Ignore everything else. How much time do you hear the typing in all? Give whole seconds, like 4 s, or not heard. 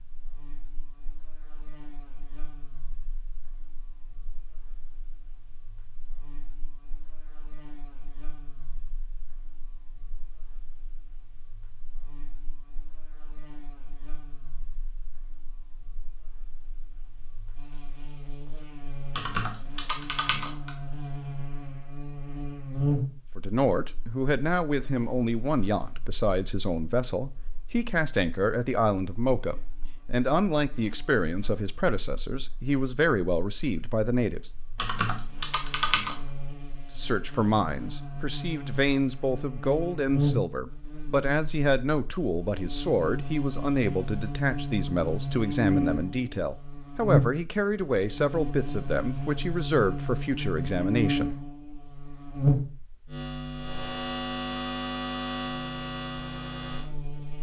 3 s.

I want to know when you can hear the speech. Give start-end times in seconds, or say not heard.
23.4-34.5, 37.0-51.4.